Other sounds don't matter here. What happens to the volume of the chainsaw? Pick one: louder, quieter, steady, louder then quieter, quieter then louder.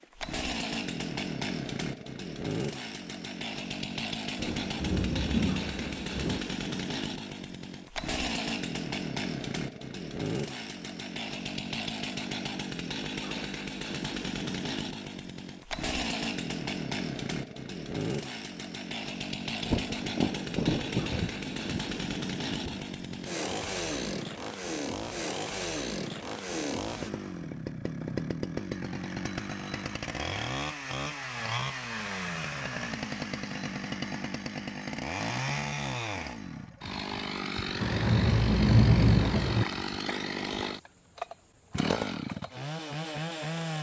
steady.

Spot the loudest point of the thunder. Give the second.
39 s.